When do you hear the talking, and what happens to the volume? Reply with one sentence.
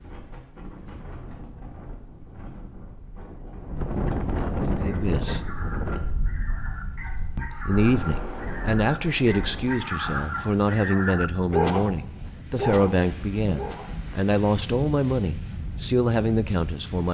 You can hear the talking briefly from 4.7 to 5.4 s; and from 7.3 to 17.0 s, at a steady volume.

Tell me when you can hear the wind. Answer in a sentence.
You can hear the wind from 0.0 to 17.0 s.